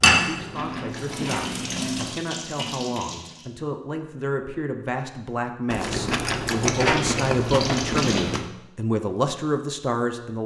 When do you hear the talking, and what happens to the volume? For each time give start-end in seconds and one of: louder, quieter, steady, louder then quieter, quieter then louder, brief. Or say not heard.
0.0-10.4 louder.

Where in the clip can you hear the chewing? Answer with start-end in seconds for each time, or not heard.
0.2-2.1, 5.7-8.5.